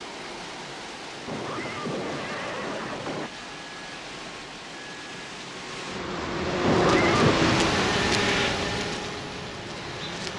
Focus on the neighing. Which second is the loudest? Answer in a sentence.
The volume of the neighing peaks at 7 seconds.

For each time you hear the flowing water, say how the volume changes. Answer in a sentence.
The flowing water can be heard from 0.0 to 10.3 s, getting louder then quieter.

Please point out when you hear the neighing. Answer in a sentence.
The neighing can be heard from 1.2 to 3.3 s and from 6.6 to 7.3 s.